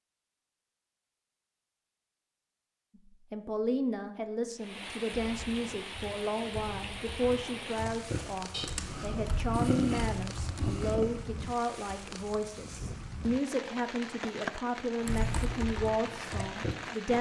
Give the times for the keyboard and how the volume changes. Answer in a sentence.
You can hear the keyboard from 5.0 to 11.2 s, getting louder; and briefly from 15.1 to 17.1 s.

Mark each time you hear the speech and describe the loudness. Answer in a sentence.
You can hear the speech from 3.0 to 17.1 s, at a steady volume.